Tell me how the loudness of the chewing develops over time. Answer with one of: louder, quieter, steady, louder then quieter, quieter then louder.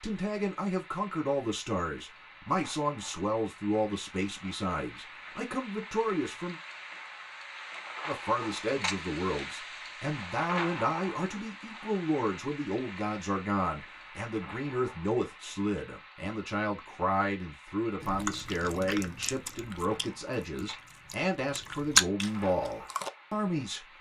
quieter then louder.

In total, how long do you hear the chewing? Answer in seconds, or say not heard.
5 s.